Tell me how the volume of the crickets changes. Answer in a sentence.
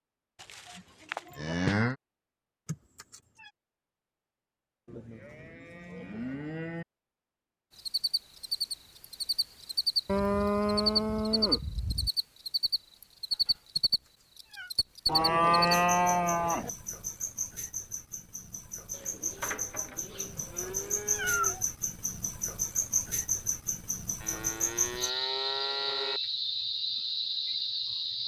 The loudness of the crickets goes down, then up.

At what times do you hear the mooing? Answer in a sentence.
The mooing can be heard from 0.4 to 1.9 s, from 4.8 to 6.8 s, from 10.1 to 12.1 s, from 15.1 to 16.7 s, from 18.9 to 21.6 s and from 24.2 to 26.2 s.